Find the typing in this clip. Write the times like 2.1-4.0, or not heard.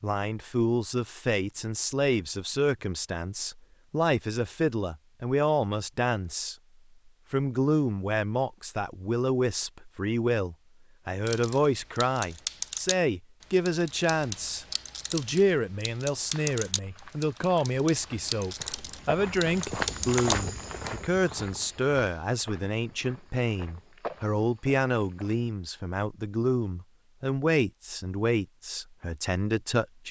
11.2-20.9.